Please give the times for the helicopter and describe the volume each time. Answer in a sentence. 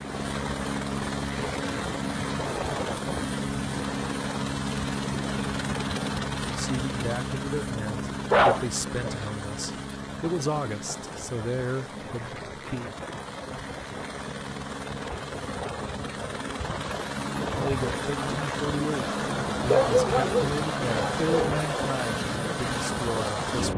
You can hear the helicopter from 0.0 to 23.7 s, getting quieter then louder.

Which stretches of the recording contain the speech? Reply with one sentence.
The speech can be heard from 6.4 to 12.9 s and from 17.6 to 23.7 s.